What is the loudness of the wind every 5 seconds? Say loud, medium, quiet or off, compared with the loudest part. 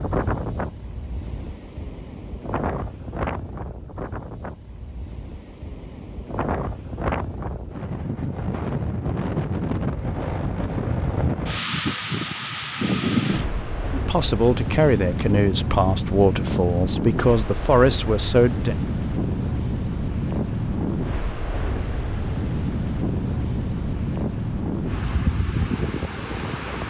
medium, loud, loud, loud, loud, loud.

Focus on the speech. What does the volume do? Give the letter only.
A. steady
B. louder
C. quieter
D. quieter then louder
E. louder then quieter
A.